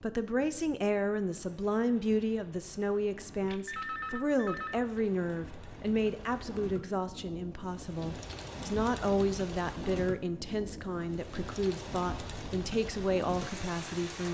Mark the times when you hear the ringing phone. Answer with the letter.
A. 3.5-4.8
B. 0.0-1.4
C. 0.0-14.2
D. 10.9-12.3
A.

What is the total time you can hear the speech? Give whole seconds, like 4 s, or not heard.
14 s.